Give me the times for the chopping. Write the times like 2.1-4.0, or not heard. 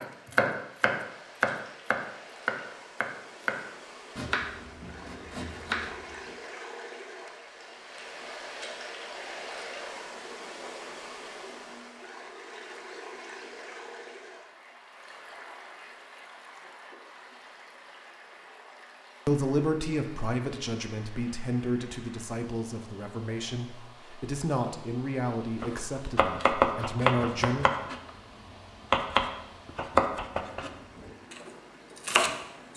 0.0-6.3, 25.6-32.7.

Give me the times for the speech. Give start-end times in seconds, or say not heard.
19.2-27.6.